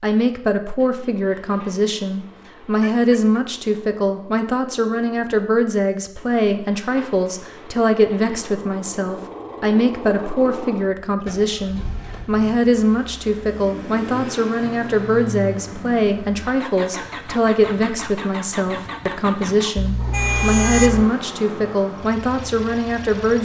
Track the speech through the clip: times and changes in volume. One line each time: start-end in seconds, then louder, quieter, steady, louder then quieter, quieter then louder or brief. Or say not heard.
0.0-23.4 steady.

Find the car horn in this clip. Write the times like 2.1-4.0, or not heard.
2.9-3.4, 19.8-21.1.